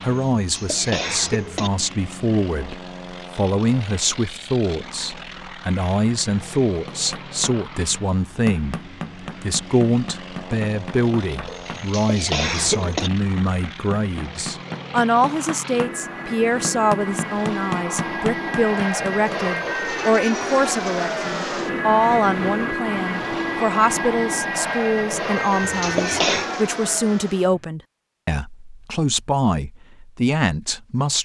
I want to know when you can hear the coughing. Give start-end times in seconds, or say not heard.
0.1-1.7, 11.4-13.1, 25.4-26.5.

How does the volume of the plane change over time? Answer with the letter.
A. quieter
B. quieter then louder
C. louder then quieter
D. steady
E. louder
E.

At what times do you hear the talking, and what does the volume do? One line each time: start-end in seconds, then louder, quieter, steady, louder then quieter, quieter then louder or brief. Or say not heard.
0.0-31.2 steady.